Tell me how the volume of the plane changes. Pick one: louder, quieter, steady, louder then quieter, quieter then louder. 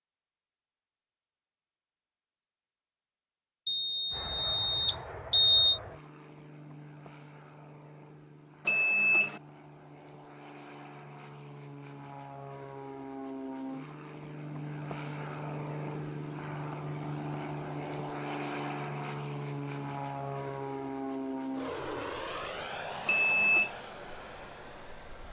louder.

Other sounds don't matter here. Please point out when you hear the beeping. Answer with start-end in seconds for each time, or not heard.
3.6-5.8, 8.7-9.4, 23.1-23.7.